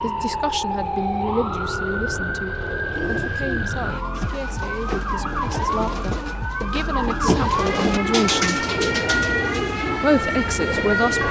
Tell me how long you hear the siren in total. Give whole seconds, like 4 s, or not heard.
11 s.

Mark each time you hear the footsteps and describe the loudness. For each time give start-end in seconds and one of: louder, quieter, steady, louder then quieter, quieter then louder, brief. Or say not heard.
not heard.